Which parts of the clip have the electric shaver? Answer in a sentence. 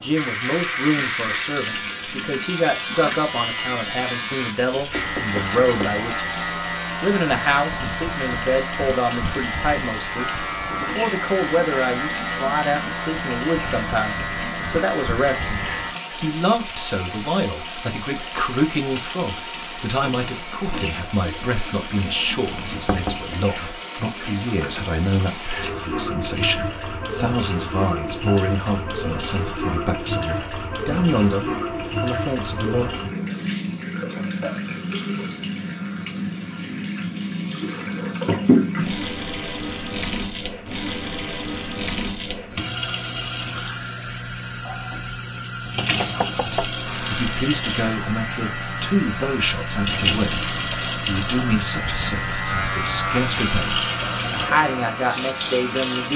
You can hear the electric shaver from 0.0 to 15.9 s and from 46.9 to 56.1 s.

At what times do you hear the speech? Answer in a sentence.
The speech can be heard from 0.0 to 32.9 s and from 46.5 to 56.1 s.